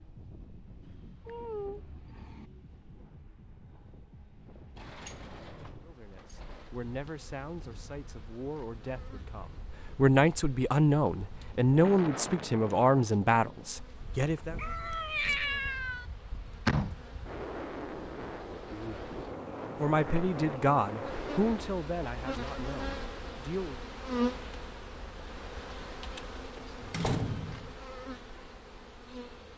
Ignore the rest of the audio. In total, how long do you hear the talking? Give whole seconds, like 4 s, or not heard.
13 s.